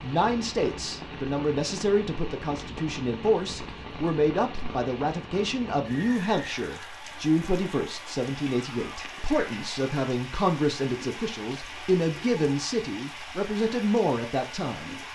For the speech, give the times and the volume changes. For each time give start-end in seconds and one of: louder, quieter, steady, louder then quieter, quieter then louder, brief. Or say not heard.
0.0-15.0 steady.